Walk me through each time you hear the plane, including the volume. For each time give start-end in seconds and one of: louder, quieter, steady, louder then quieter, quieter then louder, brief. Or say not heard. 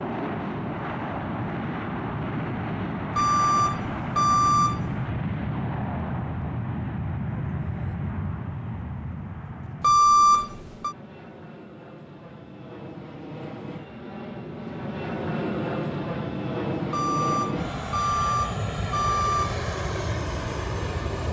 0.0-21.2 quieter then louder.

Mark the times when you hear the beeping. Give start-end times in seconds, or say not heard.
3.1-4.8, 9.8-10.9, 16.9-19.6.